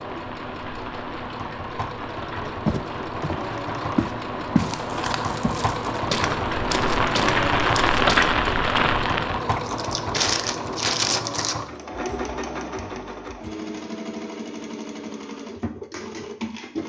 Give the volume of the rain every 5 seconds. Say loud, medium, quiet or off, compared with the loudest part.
quiet, loud, off, off.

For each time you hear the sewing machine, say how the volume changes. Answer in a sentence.
You can hear the sewing machine from 0.0 to 16.8 s, getting louder then quieter.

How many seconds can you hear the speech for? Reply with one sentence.
The speech can't be heard in this clip.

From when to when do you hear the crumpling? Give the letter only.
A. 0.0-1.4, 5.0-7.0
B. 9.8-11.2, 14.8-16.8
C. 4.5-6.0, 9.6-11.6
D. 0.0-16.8
C.